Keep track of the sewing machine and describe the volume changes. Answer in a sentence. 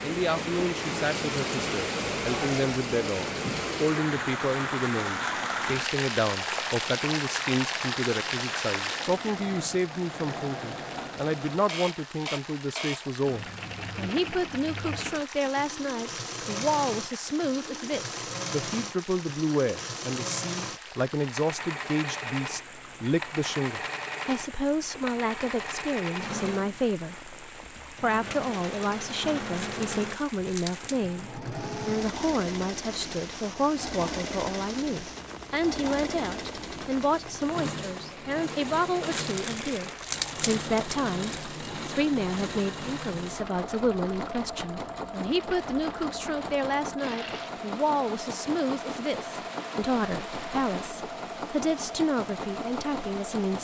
The loudness of the sewing machine stays about the same.